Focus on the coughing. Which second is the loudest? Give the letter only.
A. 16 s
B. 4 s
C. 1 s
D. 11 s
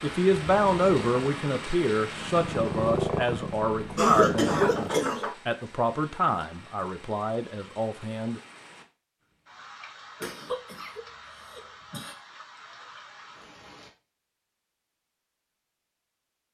B.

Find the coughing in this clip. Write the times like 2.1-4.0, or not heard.
4.0-5.3, 10.2-12.2.